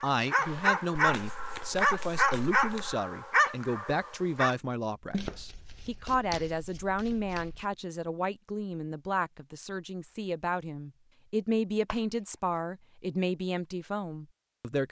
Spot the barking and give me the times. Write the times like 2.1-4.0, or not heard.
0.0-4.5.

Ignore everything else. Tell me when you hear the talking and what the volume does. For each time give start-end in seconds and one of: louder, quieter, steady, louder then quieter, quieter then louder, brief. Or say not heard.
0.0-14.8 steady.